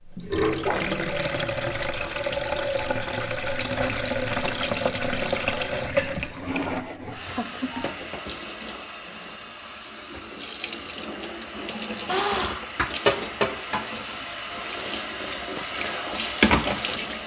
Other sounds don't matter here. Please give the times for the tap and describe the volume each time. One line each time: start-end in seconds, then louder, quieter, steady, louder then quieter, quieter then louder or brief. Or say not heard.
0.0-17.2 quieter then louder.